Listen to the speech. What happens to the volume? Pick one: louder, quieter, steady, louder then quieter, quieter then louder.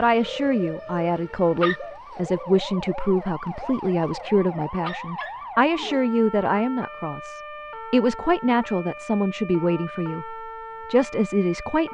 steady.